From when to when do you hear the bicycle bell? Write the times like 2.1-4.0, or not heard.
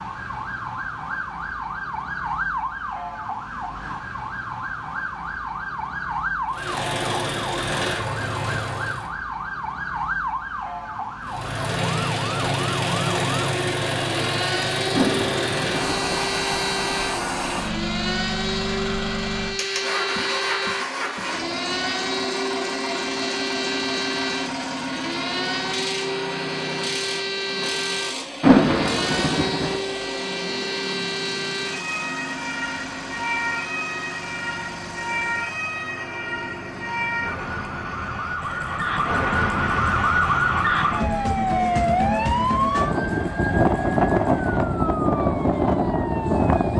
not heard.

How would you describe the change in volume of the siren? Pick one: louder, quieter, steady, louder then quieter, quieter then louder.
louder.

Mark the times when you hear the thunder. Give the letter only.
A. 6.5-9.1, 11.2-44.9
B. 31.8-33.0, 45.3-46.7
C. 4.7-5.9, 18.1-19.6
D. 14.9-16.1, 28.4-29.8
D.